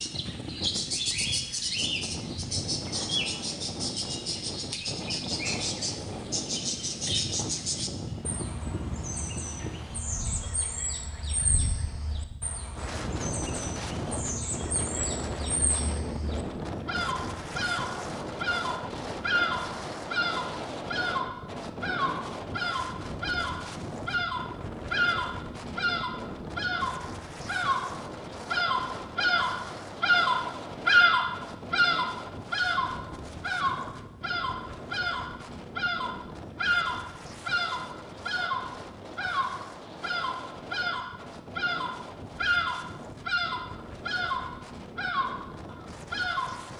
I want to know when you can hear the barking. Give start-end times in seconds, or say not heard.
not heard.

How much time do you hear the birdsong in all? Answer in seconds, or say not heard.
47 s.